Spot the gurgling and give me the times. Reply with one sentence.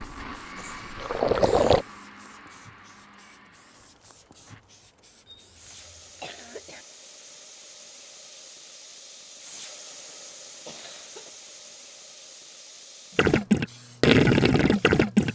The gurgling can be heard from 0.0 to 1.9 s and from 13.2 to 15.2 s.